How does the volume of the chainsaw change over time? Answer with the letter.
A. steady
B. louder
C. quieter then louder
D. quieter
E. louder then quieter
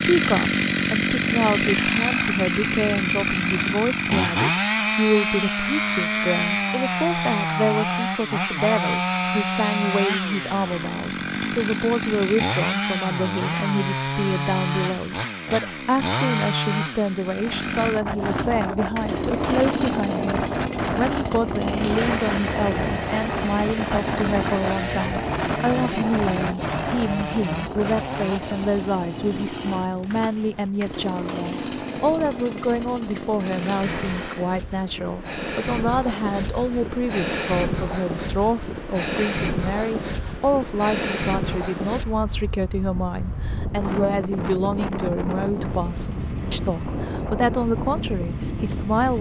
D.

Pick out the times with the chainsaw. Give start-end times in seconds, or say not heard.
0.0-34.5.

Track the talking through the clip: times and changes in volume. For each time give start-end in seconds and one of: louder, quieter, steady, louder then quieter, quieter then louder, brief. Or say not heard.
0.0-49.1 steady.